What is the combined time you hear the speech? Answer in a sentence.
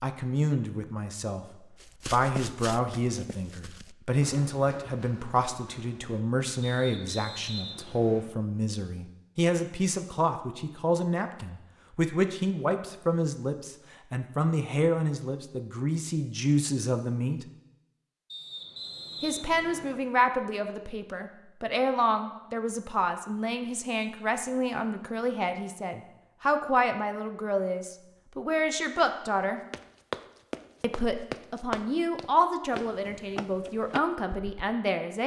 The speech can be heard for 32 seconds in total.